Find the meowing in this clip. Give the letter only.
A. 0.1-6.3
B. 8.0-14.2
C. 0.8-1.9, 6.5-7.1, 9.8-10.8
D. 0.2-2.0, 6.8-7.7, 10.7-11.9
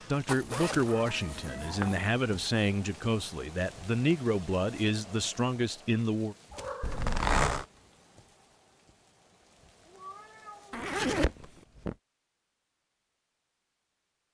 C.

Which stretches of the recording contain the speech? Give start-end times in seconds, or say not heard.
0.1-6.3.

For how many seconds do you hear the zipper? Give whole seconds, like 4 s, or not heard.
4 s.